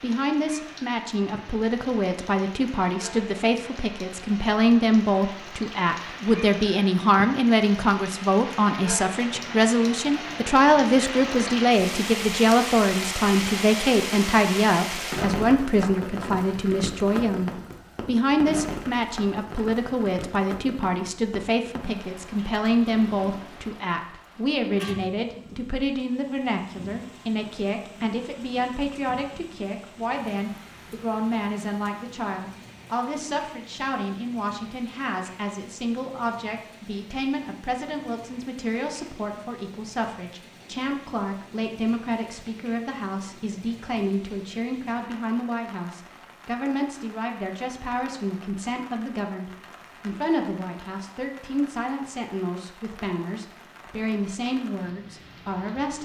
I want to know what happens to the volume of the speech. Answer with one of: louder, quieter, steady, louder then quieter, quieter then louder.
quieter.